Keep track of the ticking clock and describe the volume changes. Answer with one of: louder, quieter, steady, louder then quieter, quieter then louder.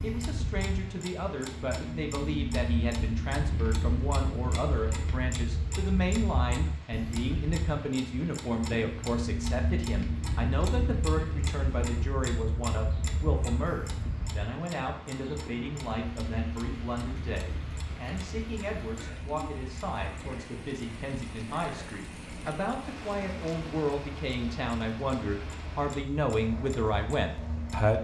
quieter.